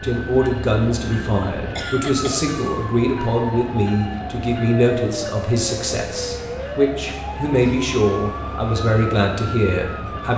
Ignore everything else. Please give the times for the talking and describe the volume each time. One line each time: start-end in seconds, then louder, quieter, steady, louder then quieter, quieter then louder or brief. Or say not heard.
0.0-10.3 steady.